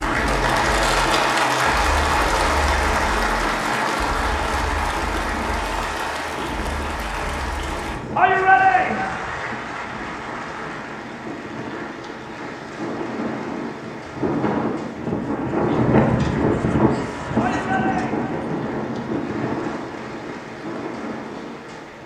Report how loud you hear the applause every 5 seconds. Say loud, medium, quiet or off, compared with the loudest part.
loud, medium, quiet, quiet, quiet.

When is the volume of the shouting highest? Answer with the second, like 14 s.
9 s.